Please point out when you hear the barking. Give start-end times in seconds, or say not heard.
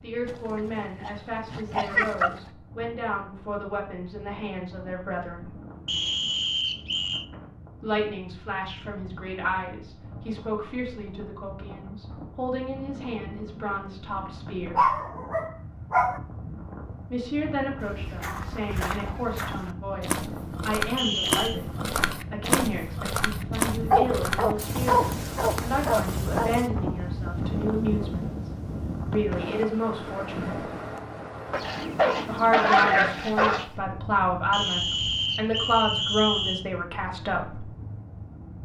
0.2-2.4, 14.8-16.2, 23.9-26.5, 31.5-33.6.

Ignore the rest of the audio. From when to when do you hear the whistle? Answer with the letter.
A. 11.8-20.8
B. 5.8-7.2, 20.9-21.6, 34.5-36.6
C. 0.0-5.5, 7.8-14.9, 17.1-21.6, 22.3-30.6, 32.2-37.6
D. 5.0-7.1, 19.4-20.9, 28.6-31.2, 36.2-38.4
B.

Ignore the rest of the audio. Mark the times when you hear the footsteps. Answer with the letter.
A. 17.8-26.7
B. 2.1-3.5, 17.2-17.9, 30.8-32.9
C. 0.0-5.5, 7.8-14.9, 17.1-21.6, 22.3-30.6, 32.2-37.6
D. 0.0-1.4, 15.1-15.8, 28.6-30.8
A.